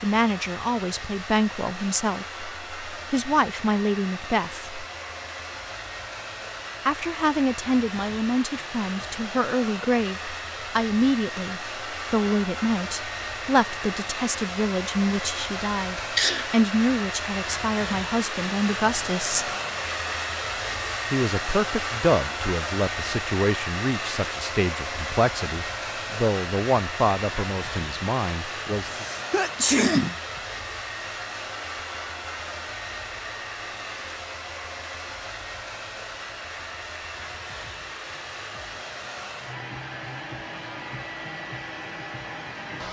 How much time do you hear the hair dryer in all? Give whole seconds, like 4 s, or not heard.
43 s.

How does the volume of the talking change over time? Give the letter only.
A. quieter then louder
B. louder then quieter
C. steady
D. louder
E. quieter
C.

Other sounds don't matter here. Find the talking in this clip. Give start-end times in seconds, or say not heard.
0.0-4.8, 6.8-19.5, 21.1-29.1.